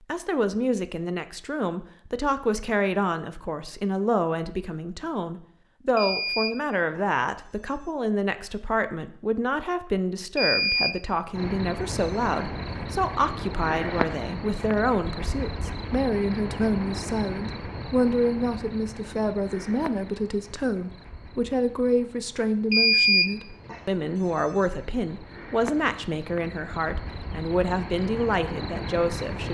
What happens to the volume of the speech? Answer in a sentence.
The loudness of the speech stays about the same.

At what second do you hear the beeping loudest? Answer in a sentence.
The volume of the beeping peaks at 23 seconds.